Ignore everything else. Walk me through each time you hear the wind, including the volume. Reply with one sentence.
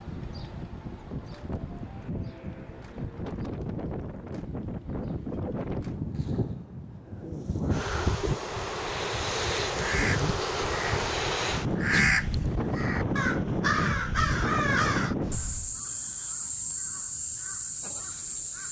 The wind can be heard from 0.0 to 15.8 s, getting louder.